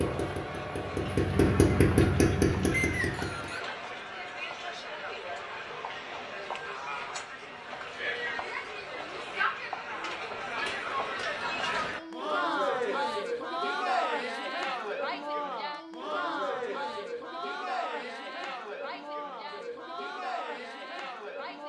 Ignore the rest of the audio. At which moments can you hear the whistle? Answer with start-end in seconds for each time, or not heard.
2.7-3.6.